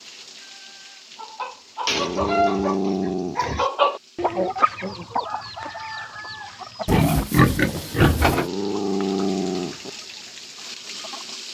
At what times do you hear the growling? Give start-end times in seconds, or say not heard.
1.9-3.5, 8.2-9.9.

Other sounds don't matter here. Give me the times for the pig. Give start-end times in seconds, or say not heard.
1.9-3.7, 6.8-8.5.